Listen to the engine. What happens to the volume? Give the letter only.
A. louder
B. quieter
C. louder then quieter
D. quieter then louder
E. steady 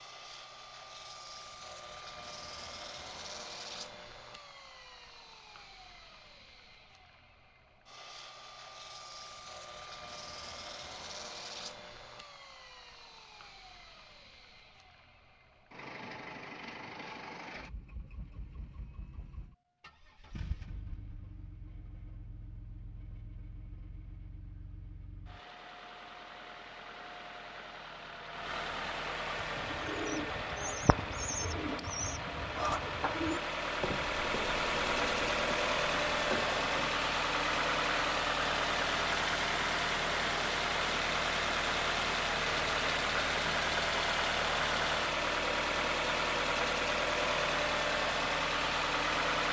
A.